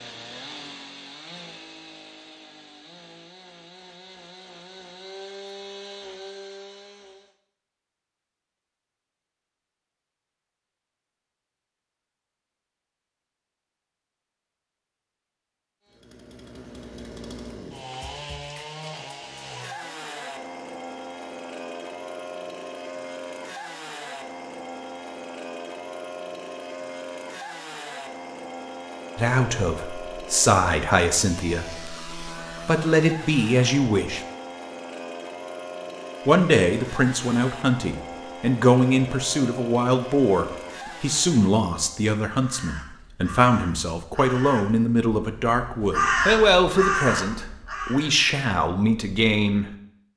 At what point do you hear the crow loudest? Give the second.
46 s.